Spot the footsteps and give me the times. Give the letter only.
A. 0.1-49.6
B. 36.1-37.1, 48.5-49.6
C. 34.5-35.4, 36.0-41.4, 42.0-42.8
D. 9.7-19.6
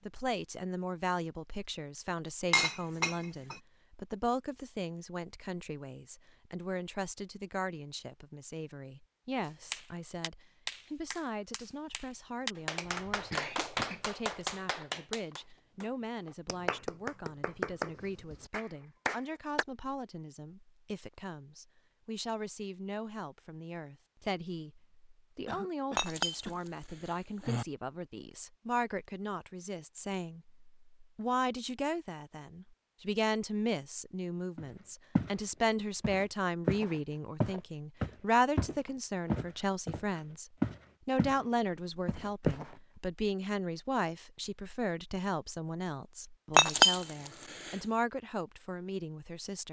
C.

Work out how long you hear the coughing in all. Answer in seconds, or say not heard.
2 s.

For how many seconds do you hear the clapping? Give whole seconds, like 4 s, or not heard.
10 s.